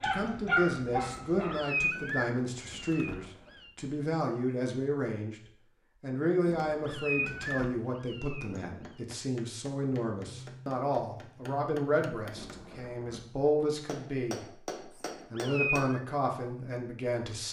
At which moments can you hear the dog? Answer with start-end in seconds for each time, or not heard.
0.0-1.6.